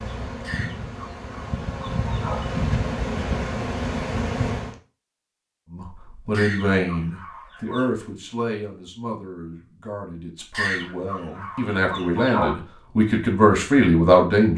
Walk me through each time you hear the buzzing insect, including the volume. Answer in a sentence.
The buzzing insect can be heard from 0.0 to 4.8 s, getting louder.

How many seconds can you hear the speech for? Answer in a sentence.
The speech can be heard for 9 seconds in total.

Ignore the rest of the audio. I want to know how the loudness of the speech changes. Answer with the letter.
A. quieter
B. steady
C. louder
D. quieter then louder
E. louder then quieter
D.